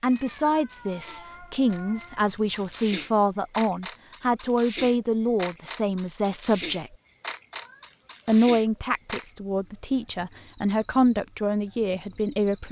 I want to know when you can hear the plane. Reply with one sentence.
You can't hear the plane here.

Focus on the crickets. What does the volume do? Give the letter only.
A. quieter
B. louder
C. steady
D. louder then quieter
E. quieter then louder
B.